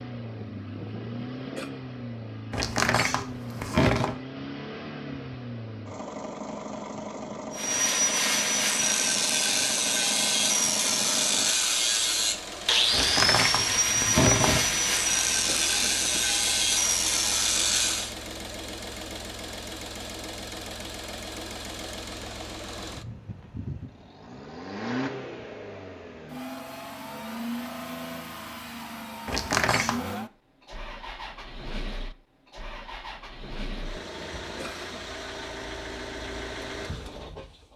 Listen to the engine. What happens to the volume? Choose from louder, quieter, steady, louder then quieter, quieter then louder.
steady.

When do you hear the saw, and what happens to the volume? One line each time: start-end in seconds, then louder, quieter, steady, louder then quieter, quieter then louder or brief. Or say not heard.
7.5-18.1 steady.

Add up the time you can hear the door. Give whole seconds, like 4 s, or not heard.
4 s.